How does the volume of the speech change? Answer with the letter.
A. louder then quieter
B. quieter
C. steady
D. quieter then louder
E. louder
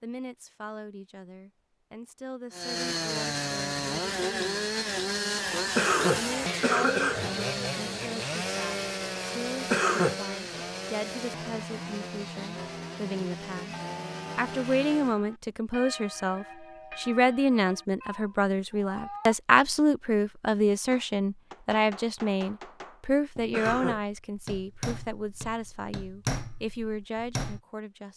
A.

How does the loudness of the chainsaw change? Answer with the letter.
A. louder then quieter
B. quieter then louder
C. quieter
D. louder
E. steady
C.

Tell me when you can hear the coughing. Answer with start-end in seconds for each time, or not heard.
5.8-7.3, 9.7-10.6, 23.5-24.0.